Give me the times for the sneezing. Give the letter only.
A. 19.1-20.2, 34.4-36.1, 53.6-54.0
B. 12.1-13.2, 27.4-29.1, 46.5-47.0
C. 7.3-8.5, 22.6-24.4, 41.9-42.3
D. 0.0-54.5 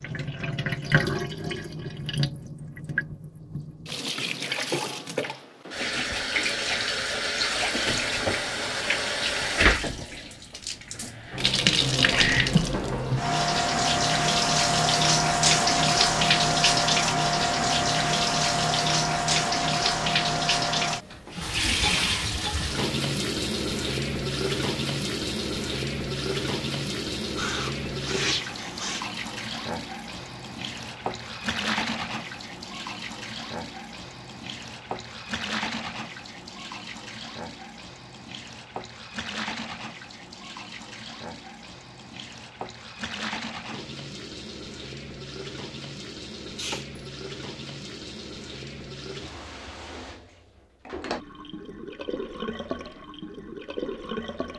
B.